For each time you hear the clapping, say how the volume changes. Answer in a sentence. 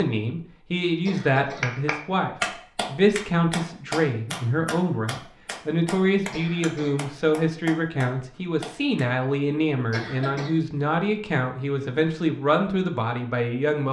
You can hear the clapping from 1.6 to 9.1 s, getting quieter.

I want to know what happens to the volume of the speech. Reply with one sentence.
The loudness of the speech stays about the same.